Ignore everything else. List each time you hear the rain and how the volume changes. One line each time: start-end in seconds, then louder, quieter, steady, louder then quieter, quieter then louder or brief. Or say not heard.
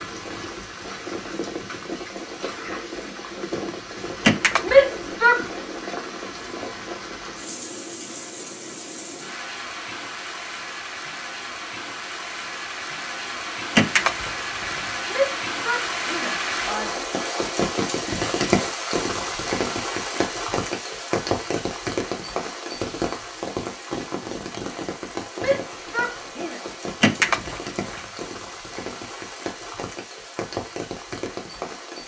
0.0-32.0 louder then quieter.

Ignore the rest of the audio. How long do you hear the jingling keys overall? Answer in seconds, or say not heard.
3 s.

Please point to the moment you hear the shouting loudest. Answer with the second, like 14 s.
5 s.